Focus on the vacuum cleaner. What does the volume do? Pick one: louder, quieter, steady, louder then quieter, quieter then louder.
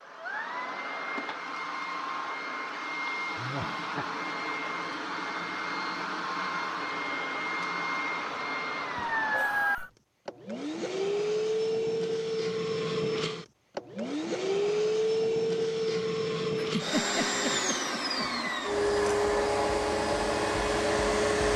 louder.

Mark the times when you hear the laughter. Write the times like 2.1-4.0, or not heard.
3.4-4.0, 8.9-9.9, 16.6-18.5.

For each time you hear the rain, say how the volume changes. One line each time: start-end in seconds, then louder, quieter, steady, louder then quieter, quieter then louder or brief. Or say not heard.
not heard.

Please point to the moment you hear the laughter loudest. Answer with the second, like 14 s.
17 s.